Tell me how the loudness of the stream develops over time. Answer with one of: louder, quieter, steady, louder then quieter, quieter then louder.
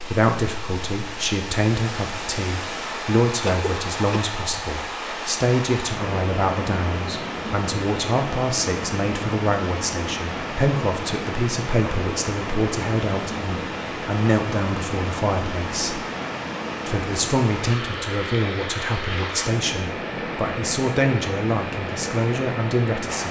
steady.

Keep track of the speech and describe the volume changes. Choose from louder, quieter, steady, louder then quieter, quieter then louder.
steady.